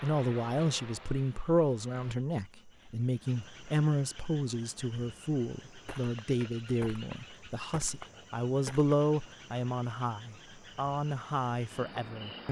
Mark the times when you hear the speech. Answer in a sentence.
You can hear the speech from 0.0 to 12.4 s.